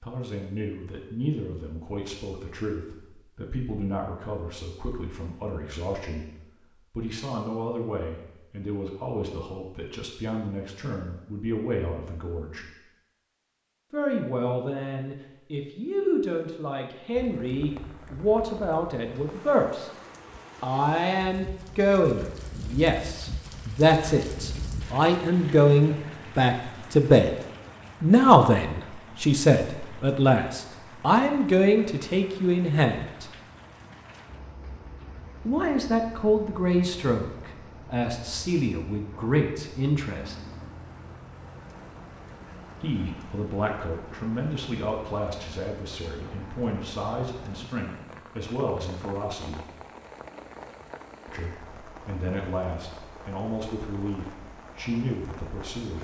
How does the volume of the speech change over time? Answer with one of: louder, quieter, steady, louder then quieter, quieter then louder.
louder then quieter.